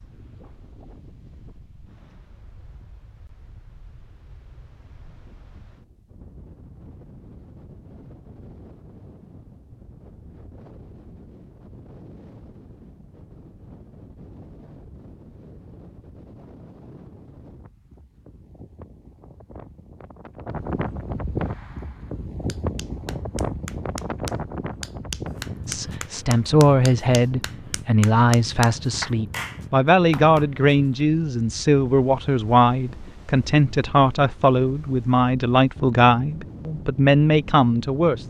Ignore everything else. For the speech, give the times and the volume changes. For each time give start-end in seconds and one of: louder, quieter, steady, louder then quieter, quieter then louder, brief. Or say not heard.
25.6-38.2 steady.